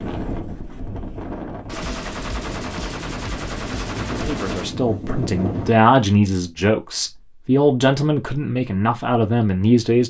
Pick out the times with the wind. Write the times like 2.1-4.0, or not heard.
0.0-5.8.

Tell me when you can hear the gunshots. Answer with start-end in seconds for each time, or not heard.
1.6-4.8.